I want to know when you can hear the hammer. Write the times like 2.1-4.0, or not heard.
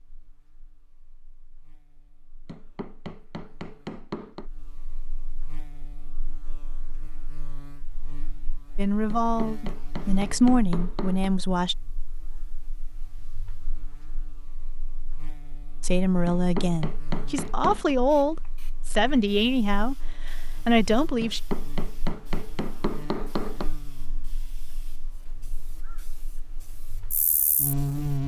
2.5-4.5, 9.1-11.3, 16.2-17.9, 21.2-23.7.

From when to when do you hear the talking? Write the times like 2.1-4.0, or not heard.
8.8-11.8, 15.8-21.4.